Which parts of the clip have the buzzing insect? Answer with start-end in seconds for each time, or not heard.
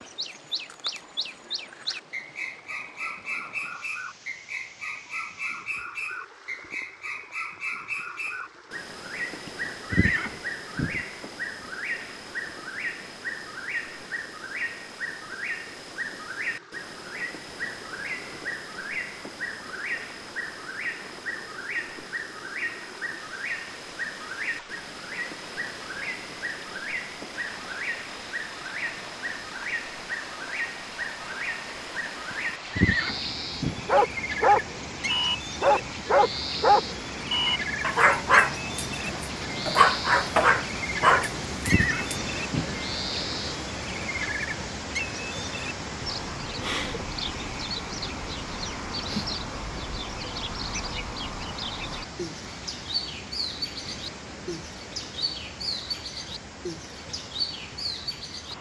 not heard.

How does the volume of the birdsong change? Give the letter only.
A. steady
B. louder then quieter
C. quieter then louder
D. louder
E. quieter
A.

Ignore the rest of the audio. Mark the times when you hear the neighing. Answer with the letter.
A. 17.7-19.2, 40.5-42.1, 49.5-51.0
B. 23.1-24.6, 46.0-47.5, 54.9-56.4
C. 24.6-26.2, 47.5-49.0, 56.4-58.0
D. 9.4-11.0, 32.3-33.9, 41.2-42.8
D.